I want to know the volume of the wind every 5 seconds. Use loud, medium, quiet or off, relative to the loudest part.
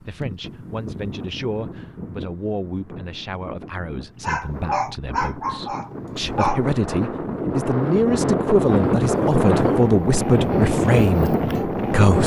quiet, loud, loud.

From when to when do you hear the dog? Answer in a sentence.
You can hear the dog from 4.2 to 6.7 s.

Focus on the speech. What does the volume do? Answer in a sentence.
The loudness of the speech goes up.